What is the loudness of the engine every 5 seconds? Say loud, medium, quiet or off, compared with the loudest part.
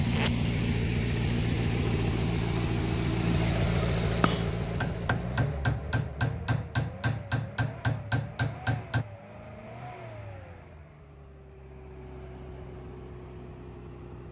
loud, quiet, quiet.